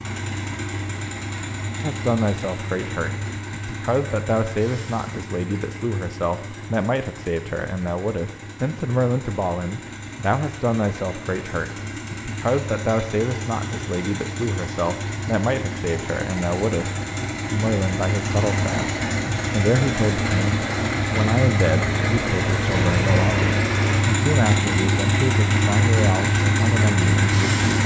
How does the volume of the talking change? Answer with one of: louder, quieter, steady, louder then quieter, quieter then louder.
steady.